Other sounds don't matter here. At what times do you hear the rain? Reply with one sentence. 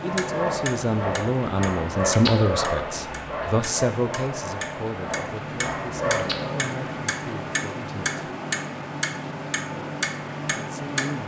You can hear the rain from 0.0 to 11.2 s.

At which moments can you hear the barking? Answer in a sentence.
The barking can be heard from 0.0 to 6.7 s.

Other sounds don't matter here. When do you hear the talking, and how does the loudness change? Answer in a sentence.
The talking can be heard from 0.0 to 8.2 s, getting quieter; and briefly from 10.6 to 11.2 s.